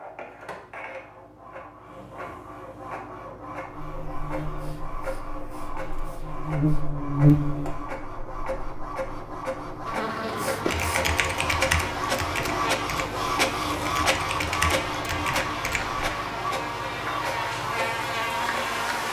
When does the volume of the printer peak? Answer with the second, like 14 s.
14 s.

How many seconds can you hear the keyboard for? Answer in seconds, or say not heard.
5 s.